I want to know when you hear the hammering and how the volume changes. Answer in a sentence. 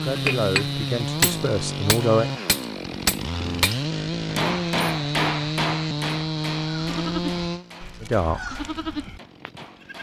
The hammering can be heard from 0.0 to 9.9 s, getting quieter.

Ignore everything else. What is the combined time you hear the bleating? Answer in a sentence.
You can hear the bleating for 3 seconds altogether.